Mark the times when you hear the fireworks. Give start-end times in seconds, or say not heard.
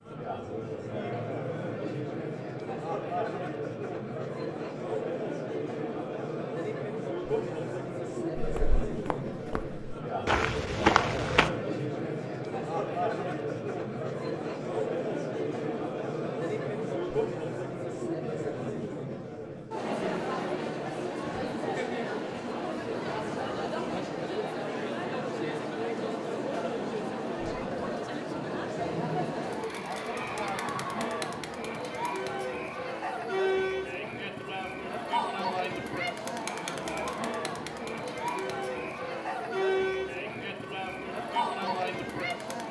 not heard.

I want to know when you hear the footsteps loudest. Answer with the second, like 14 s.
11 s.